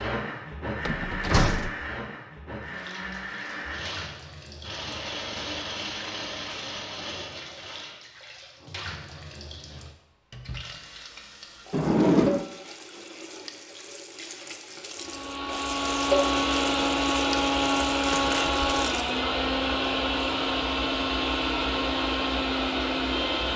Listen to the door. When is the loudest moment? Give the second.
12 s.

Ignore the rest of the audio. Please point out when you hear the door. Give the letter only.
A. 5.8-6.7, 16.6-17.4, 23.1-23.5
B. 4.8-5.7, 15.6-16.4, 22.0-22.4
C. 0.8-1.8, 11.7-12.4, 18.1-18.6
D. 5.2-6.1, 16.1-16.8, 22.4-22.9
C.